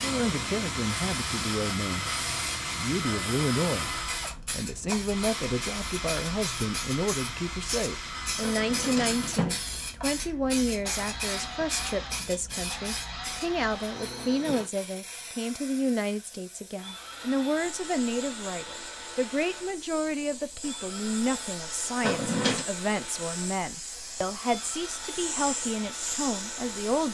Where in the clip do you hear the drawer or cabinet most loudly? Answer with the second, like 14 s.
22 s.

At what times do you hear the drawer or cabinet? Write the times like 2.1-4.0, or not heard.
8.4-9.6, 22.0-22.6.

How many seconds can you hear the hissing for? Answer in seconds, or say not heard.
27 s.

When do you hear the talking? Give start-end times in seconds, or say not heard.
0.0-3.9, 4.5-27.0.